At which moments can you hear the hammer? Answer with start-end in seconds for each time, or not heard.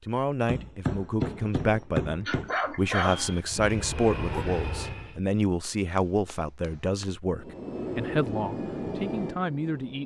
0.5-2.5, 5.6-7.1.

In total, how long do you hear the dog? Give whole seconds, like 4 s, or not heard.
2 s.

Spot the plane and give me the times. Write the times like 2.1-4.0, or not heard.
2.8-5.2, 7.3-10.0.